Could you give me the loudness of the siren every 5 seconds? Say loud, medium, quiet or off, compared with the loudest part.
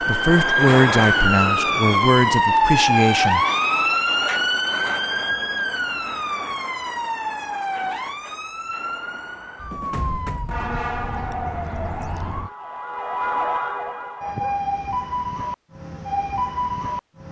loud, medium, medium, medium.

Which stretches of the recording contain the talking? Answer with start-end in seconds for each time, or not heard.
0.0-3.5.